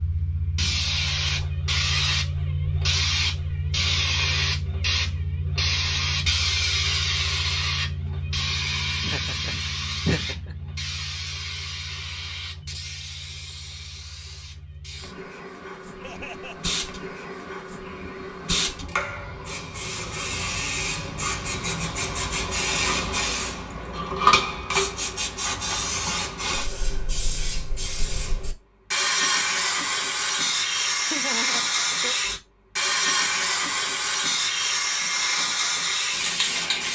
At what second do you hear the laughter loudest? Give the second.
10 s.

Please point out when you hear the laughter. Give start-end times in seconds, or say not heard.
9.0-10.6, 16.0-16.8, 31.1-32.1.